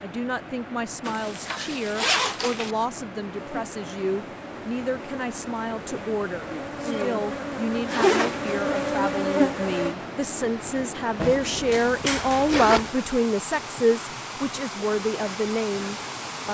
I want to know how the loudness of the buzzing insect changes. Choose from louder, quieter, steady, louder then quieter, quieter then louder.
louder.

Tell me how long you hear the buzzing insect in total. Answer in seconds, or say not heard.
7 s.